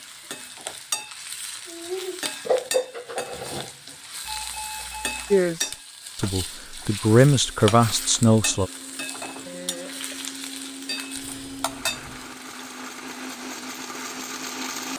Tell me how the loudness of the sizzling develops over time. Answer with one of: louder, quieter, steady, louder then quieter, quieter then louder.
quieter.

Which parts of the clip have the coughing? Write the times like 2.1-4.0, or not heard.
9.4-10.2.